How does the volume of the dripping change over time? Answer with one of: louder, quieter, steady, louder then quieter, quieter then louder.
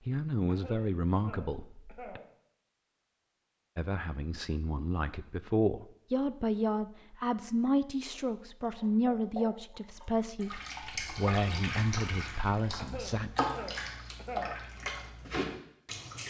louder.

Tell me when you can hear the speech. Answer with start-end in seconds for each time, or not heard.
0.1-2.2, 3.8-13.3.